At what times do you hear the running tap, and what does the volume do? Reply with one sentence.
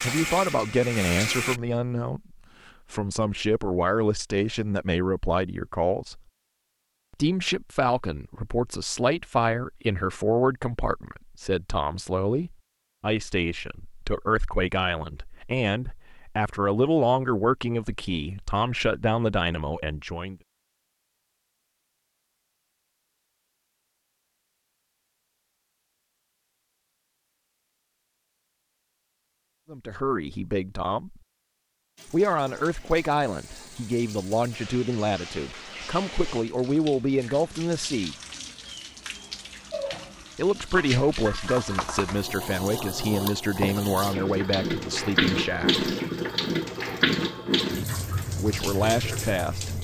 The running tap can be heard briefly from 0.0 to 1.6 s; and from 31.9 to 49.7 s, getting louder.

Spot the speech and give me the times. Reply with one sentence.
The speech can be heard from 0.0 to 6.2 s, from 7.2 to 20.4 s, from 29.7 to 31.1 s, from 32.1 to 38.1 s, from 40.4 to 45.9 s and from 48.4 to 49.7 s.